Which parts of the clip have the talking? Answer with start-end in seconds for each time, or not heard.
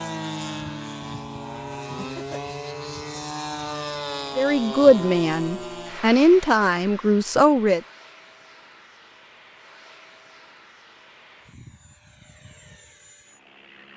4.3-7.8.